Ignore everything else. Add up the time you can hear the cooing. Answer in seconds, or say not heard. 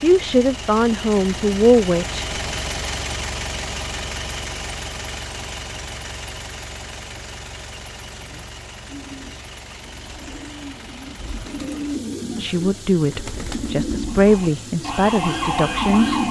7 s.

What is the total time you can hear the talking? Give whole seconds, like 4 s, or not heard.
6 s.